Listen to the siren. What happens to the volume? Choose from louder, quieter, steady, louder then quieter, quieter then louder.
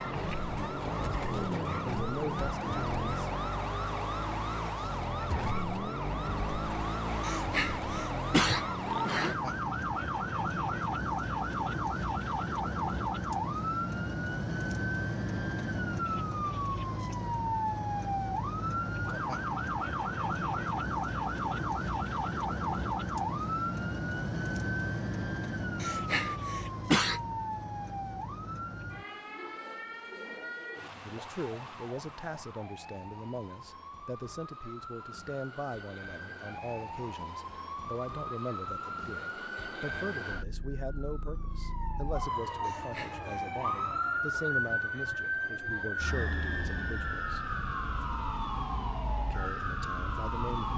quieter then louder.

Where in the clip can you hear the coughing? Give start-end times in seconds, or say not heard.
7.2-9.4, 25.8-27.2, 42.6-43.3.